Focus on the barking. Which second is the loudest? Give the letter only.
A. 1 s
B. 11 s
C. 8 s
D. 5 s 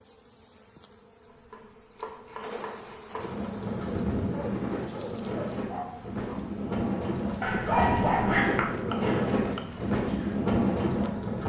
C.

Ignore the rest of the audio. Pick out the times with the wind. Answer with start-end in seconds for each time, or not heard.
3.1-11.4.